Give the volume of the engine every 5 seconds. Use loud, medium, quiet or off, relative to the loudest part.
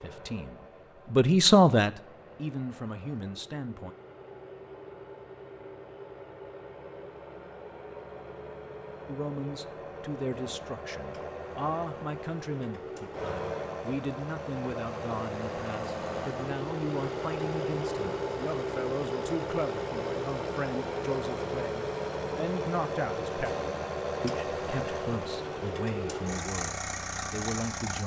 quiet, medium, medium, loud, loud, loud.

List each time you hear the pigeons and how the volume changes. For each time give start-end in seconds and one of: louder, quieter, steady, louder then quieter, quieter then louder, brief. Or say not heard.
not heard.